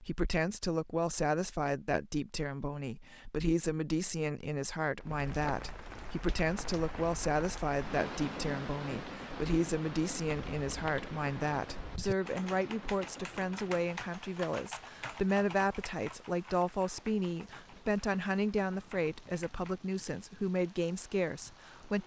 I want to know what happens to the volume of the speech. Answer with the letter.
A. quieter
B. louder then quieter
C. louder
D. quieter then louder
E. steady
E.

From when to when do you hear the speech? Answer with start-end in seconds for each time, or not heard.
0.0-22.0.